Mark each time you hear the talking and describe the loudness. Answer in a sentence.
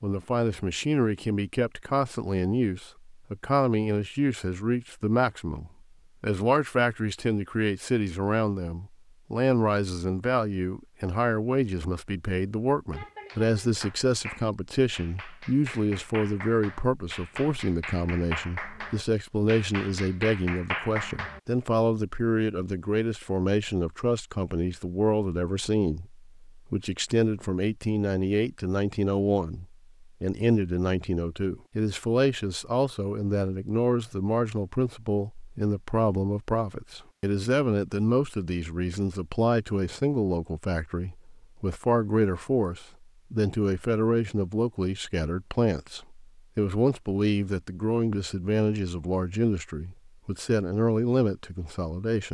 The talking can be heard from 0.0 to 52.3 s, at a steady volume.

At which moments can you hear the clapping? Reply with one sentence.
You can hear the clapping from 12.9 to 21.4 s.